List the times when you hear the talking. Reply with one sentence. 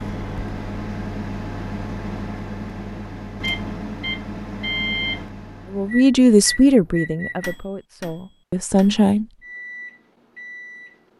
You can hear the talking from 5.7 to 9.2 s.